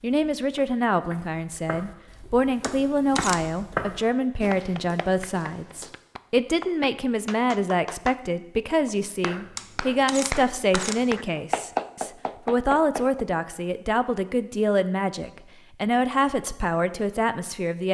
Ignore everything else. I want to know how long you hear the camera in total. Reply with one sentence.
You can hear the camera for 2 seconds altogether.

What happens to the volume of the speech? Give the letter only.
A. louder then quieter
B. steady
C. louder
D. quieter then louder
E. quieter
B.